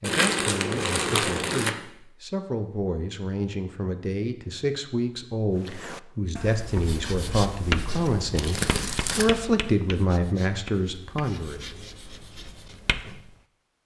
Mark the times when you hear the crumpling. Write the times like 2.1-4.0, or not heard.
0.0-1.8, 8.3-9.3.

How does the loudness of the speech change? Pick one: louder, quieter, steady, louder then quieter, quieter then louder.
louder.